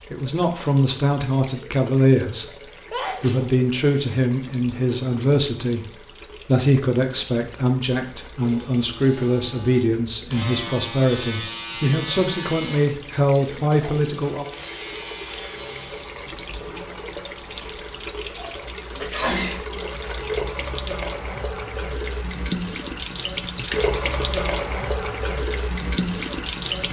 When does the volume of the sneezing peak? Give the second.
19 s.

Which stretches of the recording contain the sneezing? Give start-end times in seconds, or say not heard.
2.9-3.5, 19.0-19.6.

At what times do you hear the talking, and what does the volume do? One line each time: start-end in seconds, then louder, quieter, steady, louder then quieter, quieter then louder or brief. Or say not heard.
0.1-2.5 brief
3.2-14.4 steady.